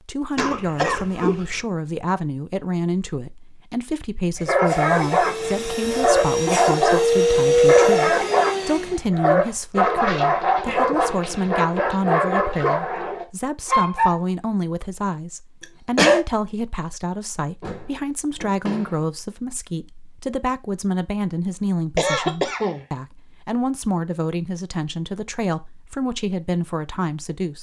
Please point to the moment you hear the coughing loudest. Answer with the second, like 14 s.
16 s.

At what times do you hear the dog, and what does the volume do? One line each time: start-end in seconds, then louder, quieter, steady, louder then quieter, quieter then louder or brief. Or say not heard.
4.3-14.2 steady.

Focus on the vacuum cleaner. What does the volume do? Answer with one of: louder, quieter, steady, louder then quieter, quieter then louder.
louder then quieter.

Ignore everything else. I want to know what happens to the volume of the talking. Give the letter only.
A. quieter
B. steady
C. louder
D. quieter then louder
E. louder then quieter
B.